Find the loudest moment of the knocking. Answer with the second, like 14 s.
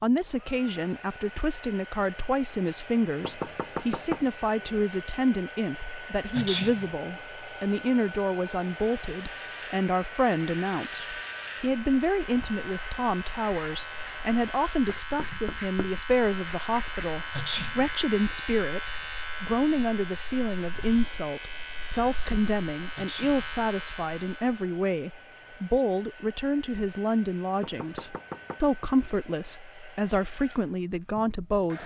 4 s.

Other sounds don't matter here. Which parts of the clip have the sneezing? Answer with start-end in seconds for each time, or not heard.
6.3-6.9, 17.3-17.9, 22.9-23.5.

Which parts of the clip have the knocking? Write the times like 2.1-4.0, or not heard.
3.1-4.8, 14.8-15.9, 27.6-29.1.